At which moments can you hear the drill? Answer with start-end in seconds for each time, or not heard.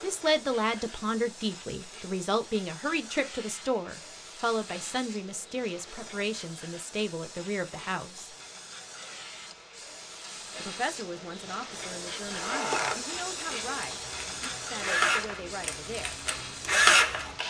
12.3-17.4.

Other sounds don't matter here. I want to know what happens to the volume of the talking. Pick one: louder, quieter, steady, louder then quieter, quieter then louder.
quieter.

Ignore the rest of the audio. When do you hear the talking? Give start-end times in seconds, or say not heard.
0.0-8.3, 10.6-16.2.